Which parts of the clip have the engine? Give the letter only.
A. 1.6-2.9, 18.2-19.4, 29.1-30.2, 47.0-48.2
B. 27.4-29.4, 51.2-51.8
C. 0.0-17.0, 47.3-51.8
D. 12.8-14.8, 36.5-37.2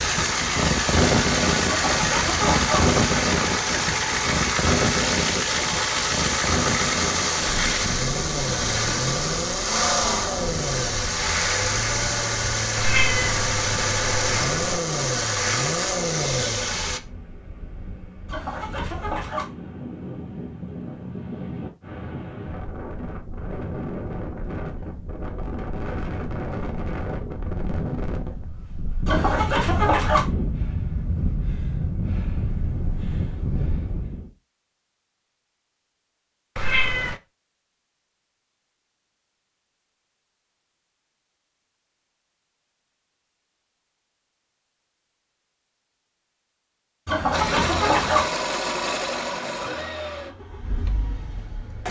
C.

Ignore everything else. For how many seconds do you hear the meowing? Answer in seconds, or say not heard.
3 s.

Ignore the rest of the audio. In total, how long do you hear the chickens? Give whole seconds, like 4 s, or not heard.
5 s.